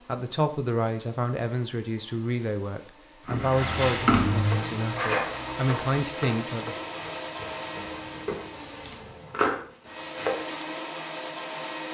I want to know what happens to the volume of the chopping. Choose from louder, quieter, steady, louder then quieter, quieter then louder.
quieter then louder.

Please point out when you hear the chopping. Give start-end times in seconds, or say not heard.
4.5-10.5.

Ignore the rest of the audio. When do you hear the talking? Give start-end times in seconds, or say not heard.
0.1-6.8.